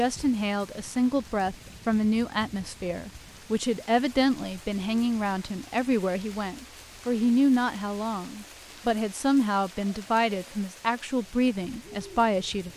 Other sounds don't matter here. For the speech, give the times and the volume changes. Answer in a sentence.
The speech can be heard from 0.0 to 12.7 s, at a steady volume.